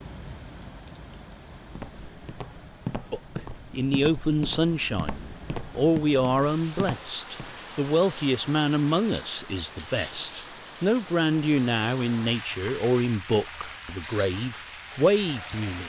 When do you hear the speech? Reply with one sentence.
You can hear the speech from 3.1 to 15.8 s.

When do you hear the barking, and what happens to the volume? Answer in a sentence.
You can't hear the barking here.